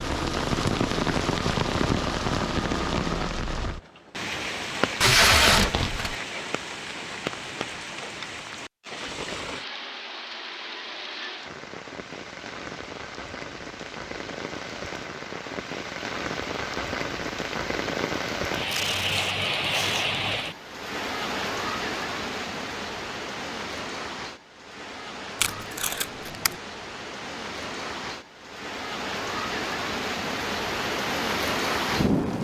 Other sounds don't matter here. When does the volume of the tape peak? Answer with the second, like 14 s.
5 s.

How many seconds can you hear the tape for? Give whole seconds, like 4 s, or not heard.
4 s.